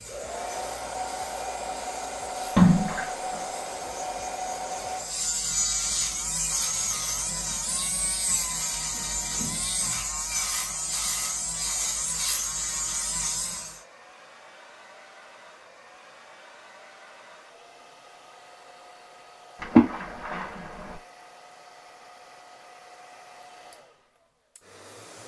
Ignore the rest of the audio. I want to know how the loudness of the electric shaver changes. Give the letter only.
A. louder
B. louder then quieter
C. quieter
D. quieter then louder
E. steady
A.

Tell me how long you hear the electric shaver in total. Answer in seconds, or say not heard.
14 s.